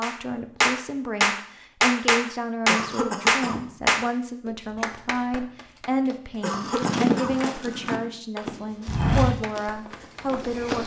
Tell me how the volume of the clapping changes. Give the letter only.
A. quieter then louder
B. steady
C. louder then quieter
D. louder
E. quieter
E.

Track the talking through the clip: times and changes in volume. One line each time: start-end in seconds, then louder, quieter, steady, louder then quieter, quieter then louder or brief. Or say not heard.
0.0-10.8 steady.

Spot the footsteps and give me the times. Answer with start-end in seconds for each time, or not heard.
6.5-10.8.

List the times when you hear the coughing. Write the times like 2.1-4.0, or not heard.
2.6-3.6, 6.4-7.3.